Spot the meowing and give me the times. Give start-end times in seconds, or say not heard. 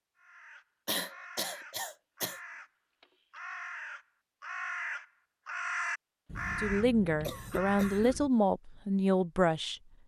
not heard.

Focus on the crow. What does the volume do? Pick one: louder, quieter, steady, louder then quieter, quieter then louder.
louder.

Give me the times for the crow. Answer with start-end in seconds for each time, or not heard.
0.1-8.2.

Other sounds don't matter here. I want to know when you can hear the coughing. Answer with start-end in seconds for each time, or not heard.
0.8-2.4, 6.2-8.3.